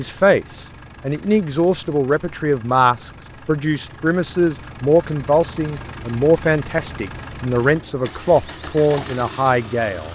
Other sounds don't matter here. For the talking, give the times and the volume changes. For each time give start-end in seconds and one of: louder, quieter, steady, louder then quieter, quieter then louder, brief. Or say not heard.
0.0-10.1 steady.